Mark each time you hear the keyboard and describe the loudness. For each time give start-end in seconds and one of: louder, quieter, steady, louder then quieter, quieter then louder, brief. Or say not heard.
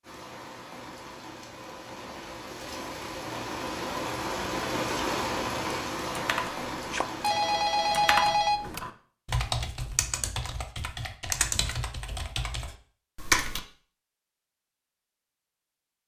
6.1-13.6 louder then quieter.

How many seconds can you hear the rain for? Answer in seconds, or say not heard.
8 s.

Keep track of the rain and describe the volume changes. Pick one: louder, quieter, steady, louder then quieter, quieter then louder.
louder then quieter.